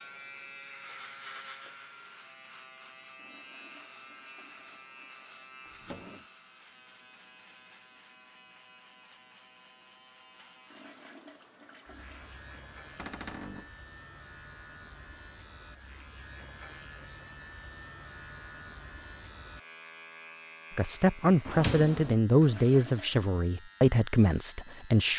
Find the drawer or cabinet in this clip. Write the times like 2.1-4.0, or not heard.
5.7-6.2, 12.9-13.8, 21.4-22.1.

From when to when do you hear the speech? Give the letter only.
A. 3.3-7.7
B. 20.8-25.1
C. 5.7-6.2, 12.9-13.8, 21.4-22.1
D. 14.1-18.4
B.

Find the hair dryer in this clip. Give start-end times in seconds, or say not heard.
not heard.